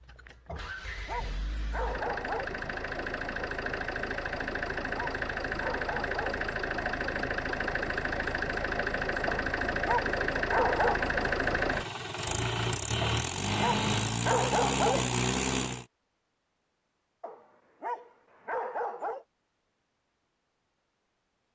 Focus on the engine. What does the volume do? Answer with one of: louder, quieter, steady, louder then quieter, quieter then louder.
louder.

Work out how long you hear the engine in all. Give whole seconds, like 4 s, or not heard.
16 s.